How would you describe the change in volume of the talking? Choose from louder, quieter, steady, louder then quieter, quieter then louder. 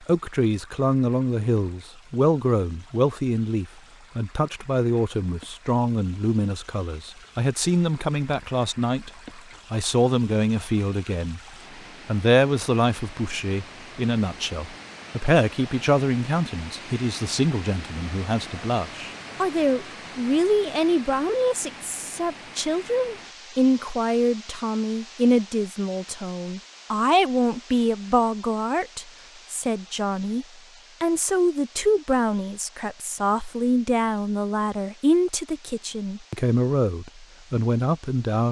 steady.